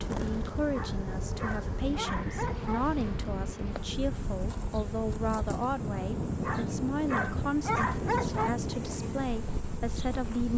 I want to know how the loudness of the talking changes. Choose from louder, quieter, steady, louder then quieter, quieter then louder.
steady.